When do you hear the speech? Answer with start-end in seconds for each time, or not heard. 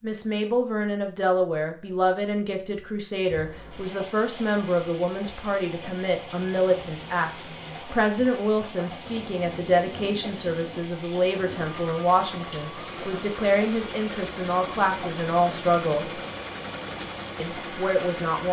0.0-16.2, 17.4-18.4.